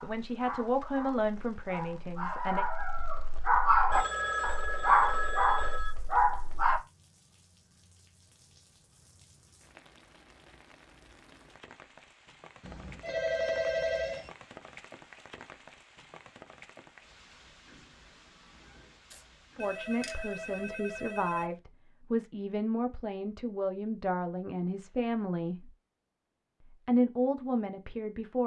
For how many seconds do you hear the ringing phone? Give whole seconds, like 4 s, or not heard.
6 s.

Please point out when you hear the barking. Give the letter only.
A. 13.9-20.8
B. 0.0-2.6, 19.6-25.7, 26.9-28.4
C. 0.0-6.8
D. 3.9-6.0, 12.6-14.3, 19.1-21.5
C.